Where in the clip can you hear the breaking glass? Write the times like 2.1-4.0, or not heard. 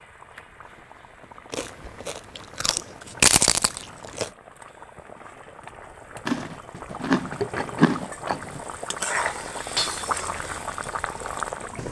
9.8-10.2.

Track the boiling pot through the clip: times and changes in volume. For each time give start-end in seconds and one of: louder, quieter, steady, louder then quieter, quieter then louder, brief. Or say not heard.
0.0-11.8 louder.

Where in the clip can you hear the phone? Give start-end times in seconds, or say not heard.
not heard.